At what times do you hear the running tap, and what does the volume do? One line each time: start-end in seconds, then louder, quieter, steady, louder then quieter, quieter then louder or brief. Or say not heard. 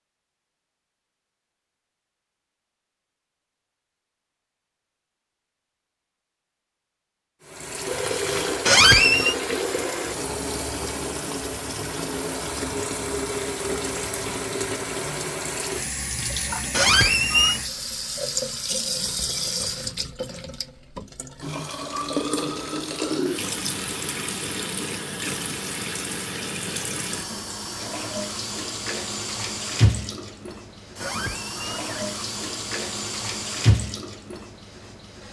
7.5-35.2 steady.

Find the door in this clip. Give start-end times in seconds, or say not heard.
8.7-9.3, 16.7-17.6, 31.0-32.2.